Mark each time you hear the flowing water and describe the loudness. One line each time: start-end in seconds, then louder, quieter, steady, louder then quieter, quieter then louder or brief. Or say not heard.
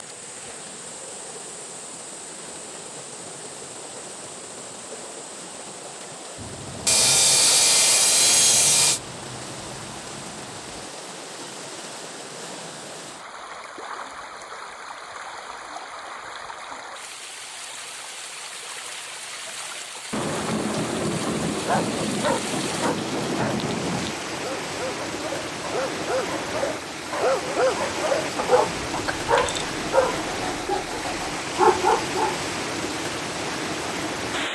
0.0-34.4 louder.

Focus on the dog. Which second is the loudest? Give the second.
32 s.